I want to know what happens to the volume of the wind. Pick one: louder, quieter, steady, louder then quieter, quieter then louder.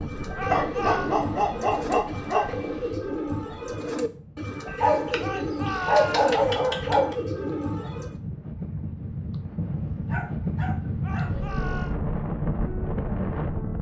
quieter then louder.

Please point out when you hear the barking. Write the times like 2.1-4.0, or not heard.
0.5-2.8, 4.7-7.2, 10.1-11.6.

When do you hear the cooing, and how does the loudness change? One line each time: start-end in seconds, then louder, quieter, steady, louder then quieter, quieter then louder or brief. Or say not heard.
0.0-8.2 steady.